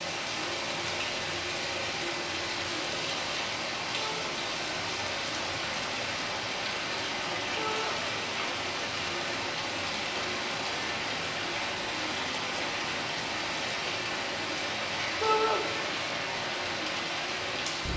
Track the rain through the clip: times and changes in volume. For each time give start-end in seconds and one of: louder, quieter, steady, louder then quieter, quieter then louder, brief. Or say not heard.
0.0-17.9 steady.